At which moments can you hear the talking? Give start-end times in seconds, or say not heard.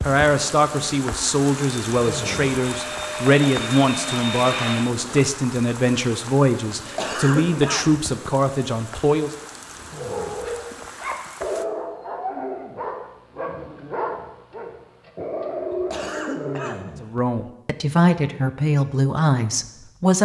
0.1-9.3, 17.0-20.2.